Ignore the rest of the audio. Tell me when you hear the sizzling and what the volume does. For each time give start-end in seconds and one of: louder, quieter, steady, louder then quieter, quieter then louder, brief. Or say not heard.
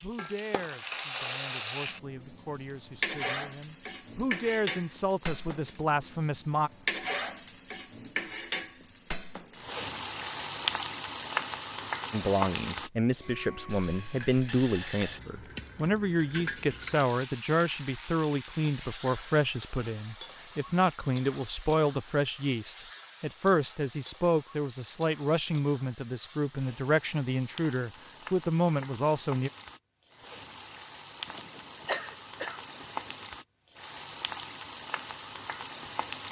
0.0-36.2 quieter then louder.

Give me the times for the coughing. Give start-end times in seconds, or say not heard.
31.2-33.2.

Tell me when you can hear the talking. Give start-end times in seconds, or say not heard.
0.0-6.7, 12.1-29.5.